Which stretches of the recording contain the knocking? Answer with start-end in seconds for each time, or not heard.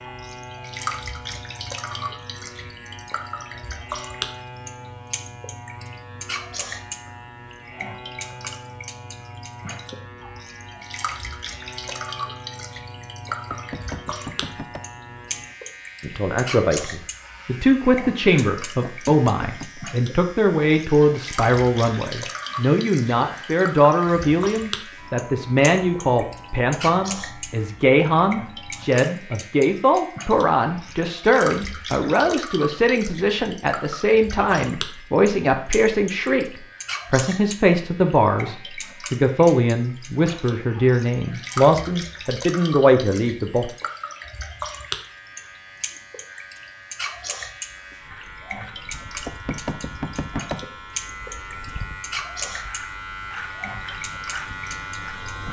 13.5-14.8, 18.8-19.8, 49.2-50.6.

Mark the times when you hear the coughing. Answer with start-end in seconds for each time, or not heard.
not heard.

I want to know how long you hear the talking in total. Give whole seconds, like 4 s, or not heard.
27 s.